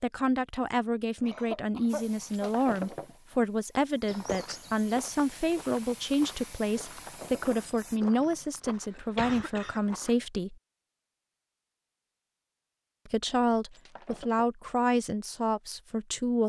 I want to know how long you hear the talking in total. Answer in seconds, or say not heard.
14 s.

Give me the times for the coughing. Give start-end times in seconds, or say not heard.
1.2-2.5, 8.9-10.0.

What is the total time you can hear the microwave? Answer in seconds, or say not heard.
not heard.